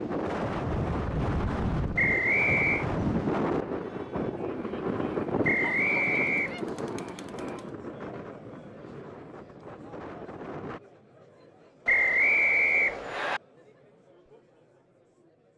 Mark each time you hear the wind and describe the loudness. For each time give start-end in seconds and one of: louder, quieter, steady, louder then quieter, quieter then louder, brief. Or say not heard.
0.0-10.8 quieter.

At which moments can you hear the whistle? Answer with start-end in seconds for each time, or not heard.
1.9-2.9, 5.4-6.5, 11.8-13.4.